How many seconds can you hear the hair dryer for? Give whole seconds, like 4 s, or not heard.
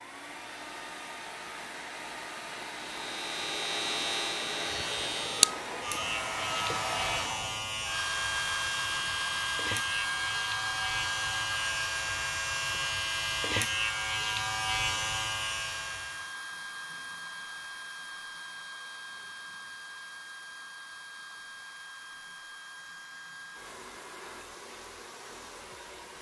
26 s.